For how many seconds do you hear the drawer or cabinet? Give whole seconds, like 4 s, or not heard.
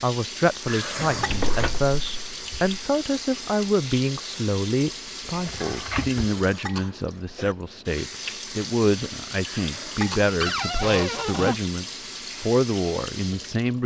4 s.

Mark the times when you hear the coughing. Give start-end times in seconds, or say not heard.
0.7-1.3, 6.1-7.5, 9.4-10.3.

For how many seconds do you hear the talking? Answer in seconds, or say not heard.
14 s.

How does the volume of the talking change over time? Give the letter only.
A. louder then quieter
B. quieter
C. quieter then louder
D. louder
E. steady
E.